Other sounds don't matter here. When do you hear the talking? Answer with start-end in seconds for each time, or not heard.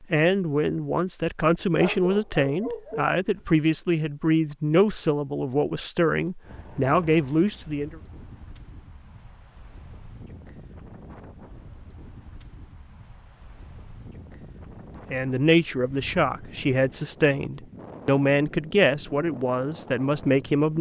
0.0-8.0, 15.1-20.7.